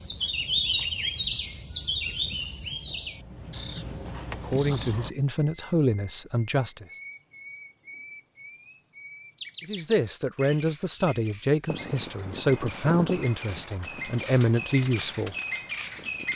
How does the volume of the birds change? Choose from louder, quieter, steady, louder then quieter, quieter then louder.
quieter then louder.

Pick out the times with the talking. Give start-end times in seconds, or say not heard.
4.3-6.8, 9.7-15.3.